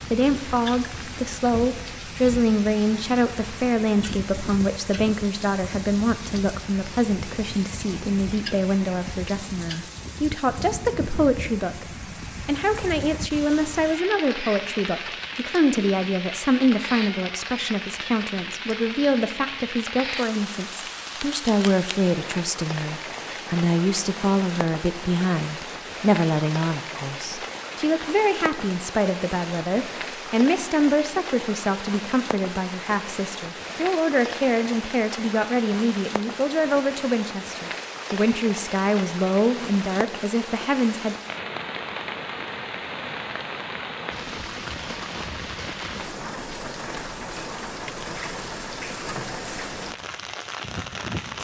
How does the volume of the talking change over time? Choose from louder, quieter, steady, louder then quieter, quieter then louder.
steady.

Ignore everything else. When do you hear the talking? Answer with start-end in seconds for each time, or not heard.
0.1-41.1.